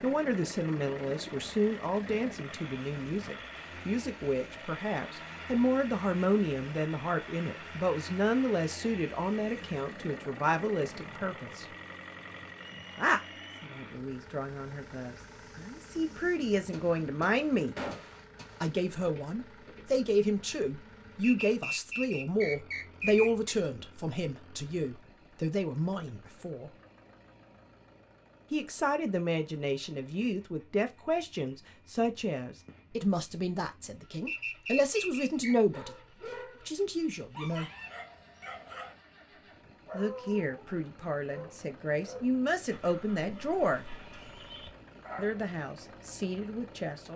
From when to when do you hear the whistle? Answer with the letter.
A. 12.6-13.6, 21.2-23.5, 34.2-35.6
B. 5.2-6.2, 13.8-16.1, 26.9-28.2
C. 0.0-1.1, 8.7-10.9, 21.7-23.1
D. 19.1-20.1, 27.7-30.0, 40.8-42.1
A.